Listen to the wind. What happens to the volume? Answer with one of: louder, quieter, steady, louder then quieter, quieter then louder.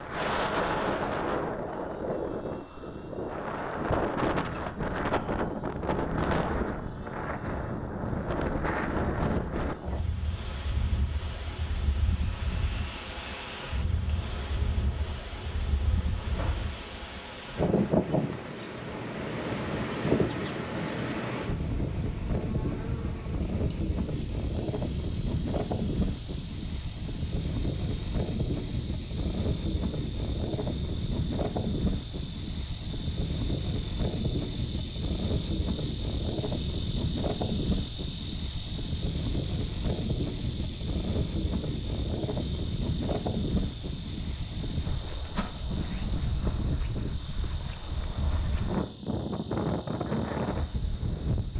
steady.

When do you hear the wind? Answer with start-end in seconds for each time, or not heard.
0.0-51.5.